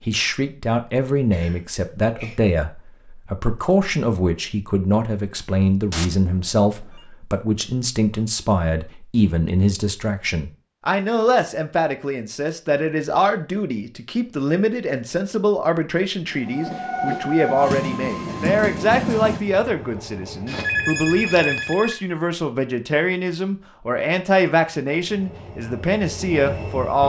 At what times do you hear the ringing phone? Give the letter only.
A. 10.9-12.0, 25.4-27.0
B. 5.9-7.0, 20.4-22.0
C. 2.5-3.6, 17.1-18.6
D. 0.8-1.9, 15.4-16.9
B.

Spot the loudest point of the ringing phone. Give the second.
21 s.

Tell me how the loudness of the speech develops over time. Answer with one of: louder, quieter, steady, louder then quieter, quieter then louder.
steady.